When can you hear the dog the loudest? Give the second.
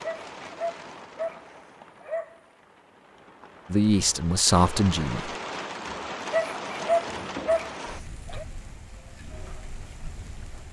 7 s.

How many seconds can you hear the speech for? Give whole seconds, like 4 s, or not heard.
2 s.